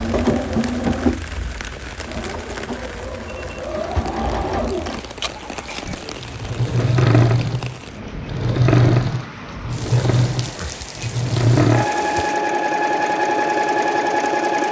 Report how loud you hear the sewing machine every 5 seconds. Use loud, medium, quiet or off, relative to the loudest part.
medium, loud, loud.